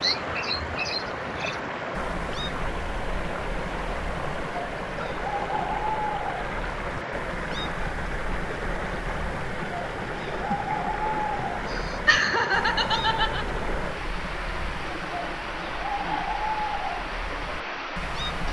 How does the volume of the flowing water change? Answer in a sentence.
The loudness of the flowing water stays about the same.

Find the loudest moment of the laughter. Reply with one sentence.
The loudest moment of the laughter is at 12 seconds.